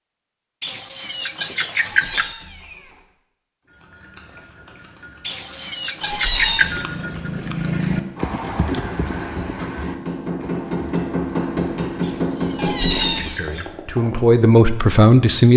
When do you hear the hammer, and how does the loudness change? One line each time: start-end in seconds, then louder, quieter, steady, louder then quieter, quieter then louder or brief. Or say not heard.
7.5-13.2 louder.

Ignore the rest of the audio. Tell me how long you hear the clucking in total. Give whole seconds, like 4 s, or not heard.
5 s.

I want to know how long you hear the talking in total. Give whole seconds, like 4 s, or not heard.
2 s.